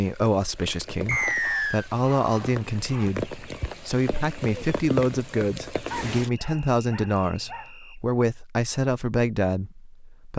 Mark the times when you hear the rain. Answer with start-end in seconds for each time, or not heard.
0.0-6.3.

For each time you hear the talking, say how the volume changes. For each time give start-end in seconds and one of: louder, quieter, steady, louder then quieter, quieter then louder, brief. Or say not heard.
0.0-10.3 steady.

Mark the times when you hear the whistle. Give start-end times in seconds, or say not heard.
1.1-1.9, 6.3-8.0.